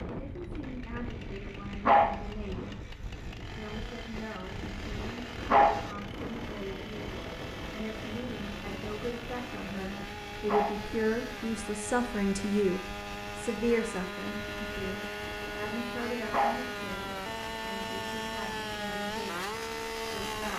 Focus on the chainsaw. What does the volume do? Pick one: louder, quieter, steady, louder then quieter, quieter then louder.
louder.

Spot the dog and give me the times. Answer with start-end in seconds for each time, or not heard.
1.9-2.7, 5.5-6.3, 10.4-11.3, 16.3-17.1.